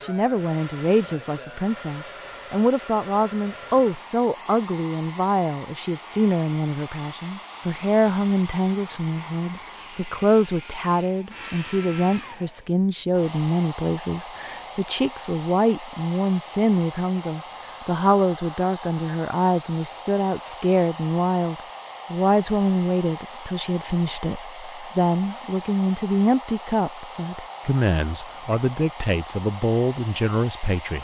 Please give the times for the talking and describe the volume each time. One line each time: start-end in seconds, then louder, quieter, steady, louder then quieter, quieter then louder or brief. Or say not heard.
0.0-30.9 steady.